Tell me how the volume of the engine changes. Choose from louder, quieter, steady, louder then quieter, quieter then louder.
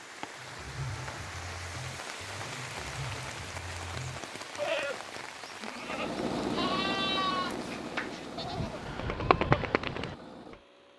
quieter.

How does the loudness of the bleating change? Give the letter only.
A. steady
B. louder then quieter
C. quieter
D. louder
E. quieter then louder
D.